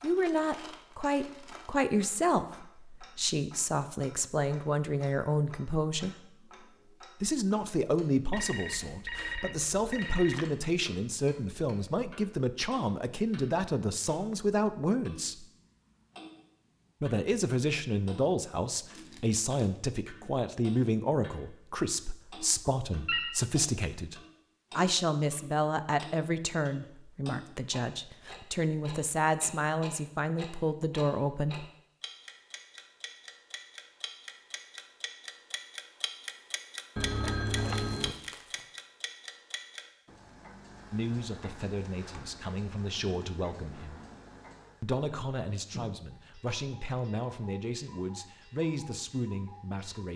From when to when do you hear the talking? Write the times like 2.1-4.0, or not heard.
0.0-6.2, 7.2-15.4, 17.0-31.6, 40.9-44.0, 44.8-50.1.